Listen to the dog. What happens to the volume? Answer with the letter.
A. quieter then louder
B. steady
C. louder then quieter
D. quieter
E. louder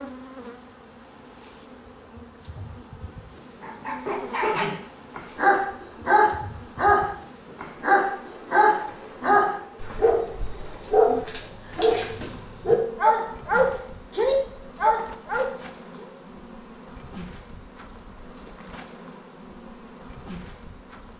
B.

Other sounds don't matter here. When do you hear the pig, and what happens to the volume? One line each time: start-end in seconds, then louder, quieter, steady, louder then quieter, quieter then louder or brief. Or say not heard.
not heard.